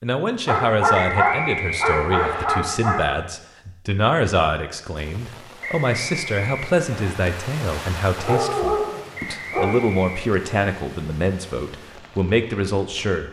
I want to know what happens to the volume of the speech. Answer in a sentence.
The volume of the speech stays about the same.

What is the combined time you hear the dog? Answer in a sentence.
You can hear the dog for 4 seconds altogether.